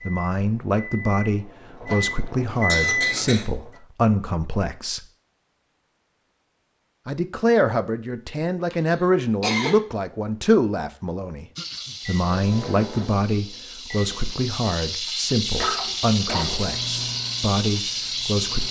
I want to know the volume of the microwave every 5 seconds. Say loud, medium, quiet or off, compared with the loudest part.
loud, off, medium, medium.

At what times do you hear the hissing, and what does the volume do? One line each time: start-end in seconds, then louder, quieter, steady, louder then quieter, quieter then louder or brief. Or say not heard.
11.6-18.6 louder.